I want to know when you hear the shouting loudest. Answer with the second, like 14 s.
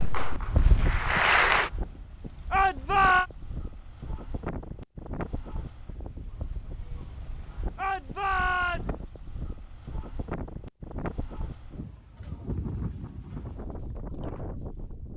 3 s.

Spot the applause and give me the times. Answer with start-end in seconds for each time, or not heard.
0.0-1.7.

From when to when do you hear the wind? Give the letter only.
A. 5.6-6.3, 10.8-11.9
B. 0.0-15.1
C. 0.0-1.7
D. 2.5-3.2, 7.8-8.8
B.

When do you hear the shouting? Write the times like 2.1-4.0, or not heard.
2.5-3.2, 7.8-8.8.